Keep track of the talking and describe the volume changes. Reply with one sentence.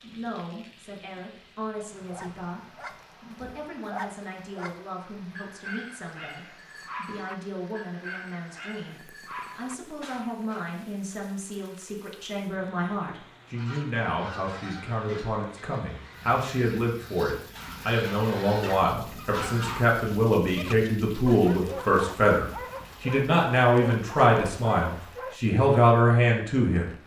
The loudness of the talking goes up.